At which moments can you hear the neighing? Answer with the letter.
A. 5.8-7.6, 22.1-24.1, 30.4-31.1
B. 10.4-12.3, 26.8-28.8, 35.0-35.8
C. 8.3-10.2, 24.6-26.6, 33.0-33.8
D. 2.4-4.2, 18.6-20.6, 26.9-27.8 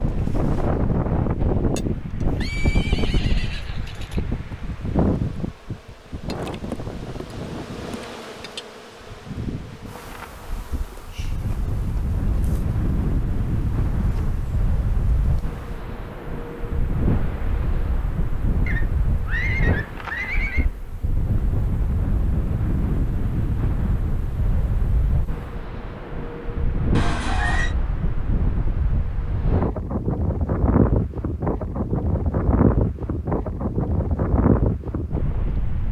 D.